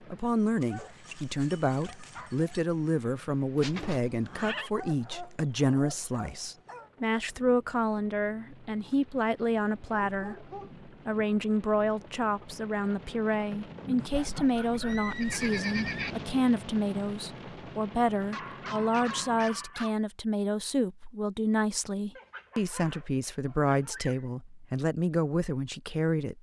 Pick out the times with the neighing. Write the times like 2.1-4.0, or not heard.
3.5-4.7, 14.1-16.1.